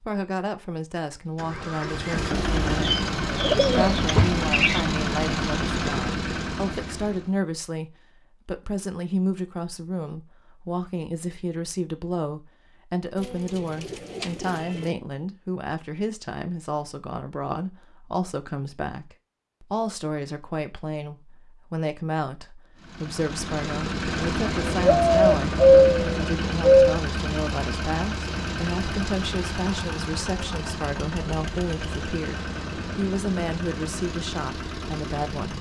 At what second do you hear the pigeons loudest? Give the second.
26 s.